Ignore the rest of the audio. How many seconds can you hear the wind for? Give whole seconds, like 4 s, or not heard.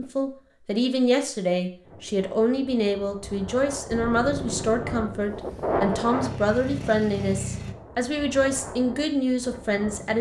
8 s.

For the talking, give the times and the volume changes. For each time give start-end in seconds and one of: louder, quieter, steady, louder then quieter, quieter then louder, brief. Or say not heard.
0.0-10.1 steady.